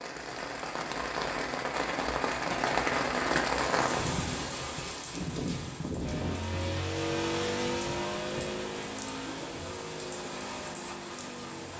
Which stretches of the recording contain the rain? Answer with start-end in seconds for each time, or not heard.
0.0-11.7.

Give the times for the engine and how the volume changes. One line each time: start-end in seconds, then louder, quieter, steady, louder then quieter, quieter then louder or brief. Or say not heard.
6.0-11.7 quieter.